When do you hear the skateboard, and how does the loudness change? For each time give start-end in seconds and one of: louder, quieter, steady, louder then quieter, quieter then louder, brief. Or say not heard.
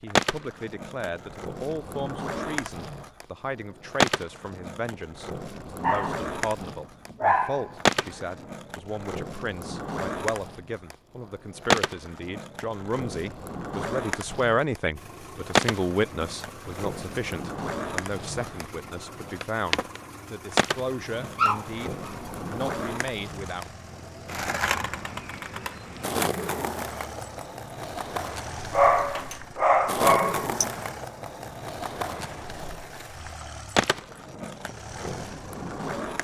0.1-36.1 steady.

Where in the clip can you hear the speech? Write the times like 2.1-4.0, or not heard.
0.0-23.6.